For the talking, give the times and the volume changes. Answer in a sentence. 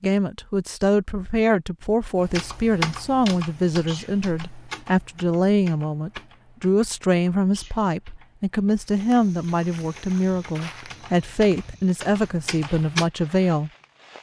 You can hear the talking from 0.0 to 13.7 s, at a steady volume.